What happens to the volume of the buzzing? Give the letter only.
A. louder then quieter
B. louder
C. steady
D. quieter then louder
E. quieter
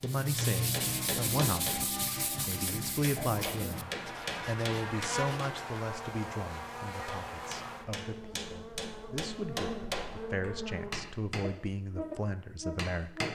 D.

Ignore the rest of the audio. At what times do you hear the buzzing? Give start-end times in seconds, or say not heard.
3.7-13.3.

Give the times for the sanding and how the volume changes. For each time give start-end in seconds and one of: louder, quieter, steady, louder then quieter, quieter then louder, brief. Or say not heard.
0.0-5.5 quieter.